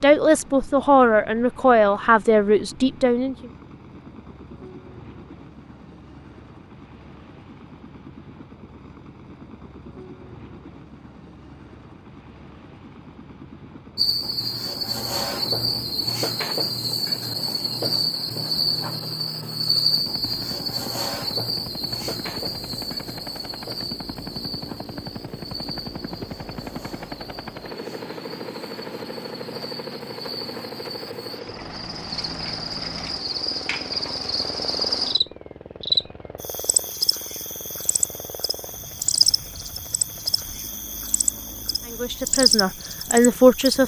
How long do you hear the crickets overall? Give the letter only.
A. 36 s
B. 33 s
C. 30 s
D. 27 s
C.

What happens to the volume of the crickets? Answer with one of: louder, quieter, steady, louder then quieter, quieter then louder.
quieter then louder.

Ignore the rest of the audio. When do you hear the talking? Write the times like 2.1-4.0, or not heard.
0.0-3.5, 41.9-43.8.